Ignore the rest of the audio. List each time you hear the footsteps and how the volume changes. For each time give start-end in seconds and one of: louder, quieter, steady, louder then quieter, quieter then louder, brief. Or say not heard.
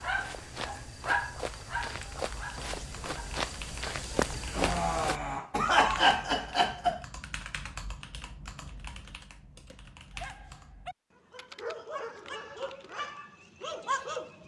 0.0-5.2 louder.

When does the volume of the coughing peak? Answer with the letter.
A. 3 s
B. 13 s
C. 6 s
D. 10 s
C.